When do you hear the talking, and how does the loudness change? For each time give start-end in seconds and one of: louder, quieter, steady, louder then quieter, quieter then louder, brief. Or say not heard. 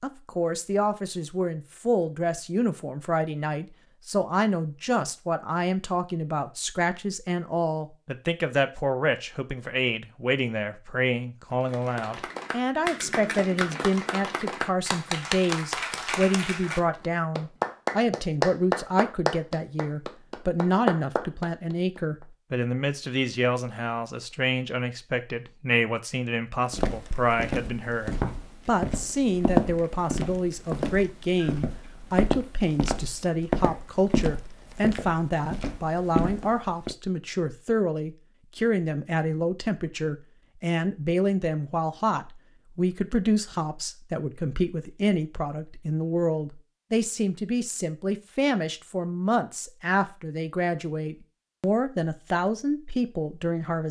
0.0-53.8 steady.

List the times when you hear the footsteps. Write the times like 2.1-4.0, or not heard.
26.7-37.0.